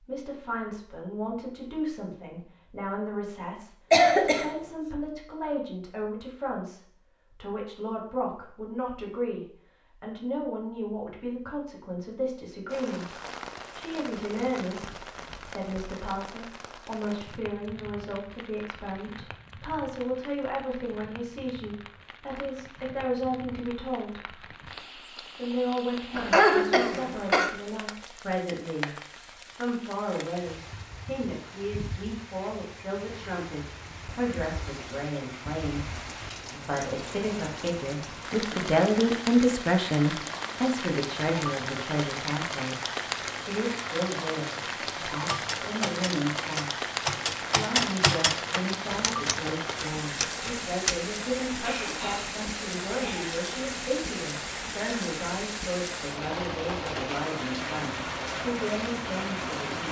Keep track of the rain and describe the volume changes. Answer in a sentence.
The volume of the rain goes up.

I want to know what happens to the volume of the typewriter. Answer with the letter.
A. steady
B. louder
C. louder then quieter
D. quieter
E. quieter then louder
C.